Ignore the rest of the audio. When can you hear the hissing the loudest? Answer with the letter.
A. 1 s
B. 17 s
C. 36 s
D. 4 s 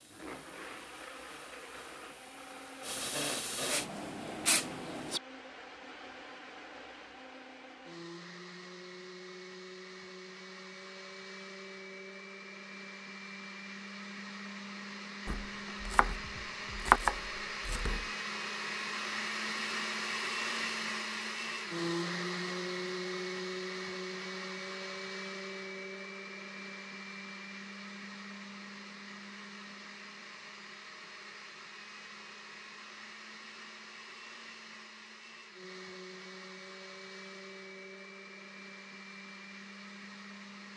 D.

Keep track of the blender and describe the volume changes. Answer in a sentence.
The loudness of the blender goes up, then down.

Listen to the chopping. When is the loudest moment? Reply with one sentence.
The loudest moment of the chopping is at 17 seconds.